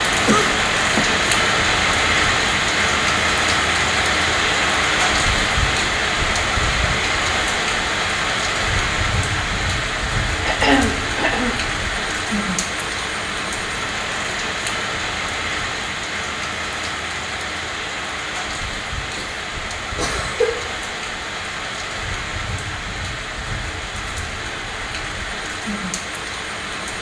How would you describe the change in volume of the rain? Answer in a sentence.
The loudness of the rain goes down.